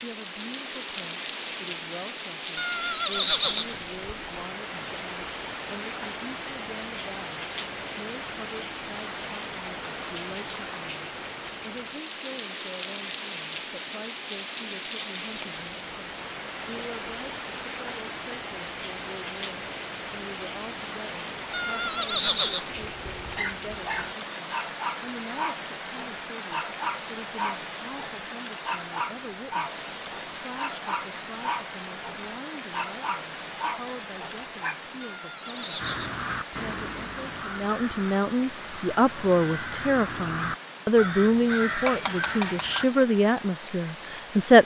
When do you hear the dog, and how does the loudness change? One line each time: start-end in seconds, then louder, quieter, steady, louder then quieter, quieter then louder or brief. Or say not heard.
22.8-34.8 steady.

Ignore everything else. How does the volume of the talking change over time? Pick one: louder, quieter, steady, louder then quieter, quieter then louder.
louder.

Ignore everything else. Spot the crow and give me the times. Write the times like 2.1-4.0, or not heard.
35.8-42.9.